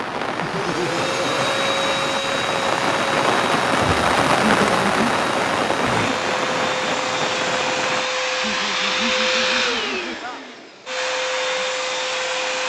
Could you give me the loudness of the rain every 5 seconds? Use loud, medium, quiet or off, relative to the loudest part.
loud, loud, off.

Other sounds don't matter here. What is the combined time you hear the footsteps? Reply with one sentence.
You can't hear the footsteps here.